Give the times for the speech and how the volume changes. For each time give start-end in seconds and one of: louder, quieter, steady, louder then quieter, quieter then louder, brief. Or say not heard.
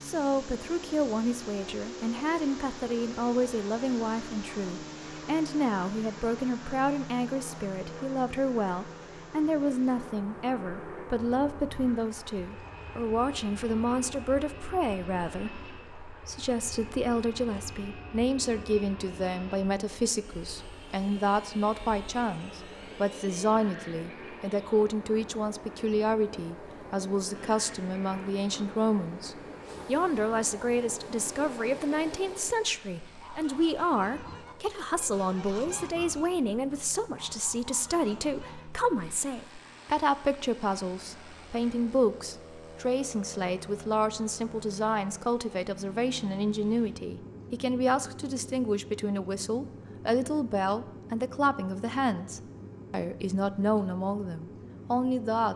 0.0-55.5 steady.